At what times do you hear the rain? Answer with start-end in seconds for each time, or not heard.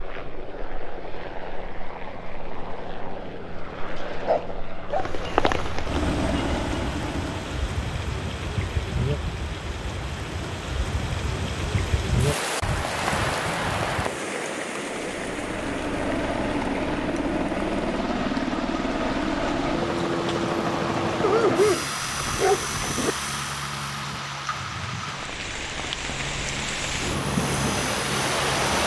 4.9-28.8.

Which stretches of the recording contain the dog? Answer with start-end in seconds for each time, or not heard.
3.9-5.5, 21.2-23.1.